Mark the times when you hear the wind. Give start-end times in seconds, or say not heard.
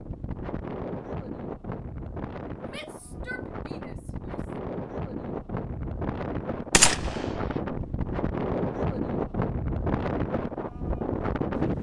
0.0-11.7.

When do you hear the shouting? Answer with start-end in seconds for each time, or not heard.
2.6-4.5.